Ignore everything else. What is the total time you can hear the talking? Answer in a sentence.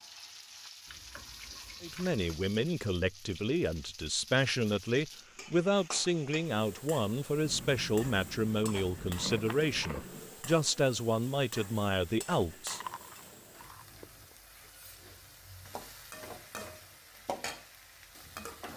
You can hear the talking for 11 seconds altogether.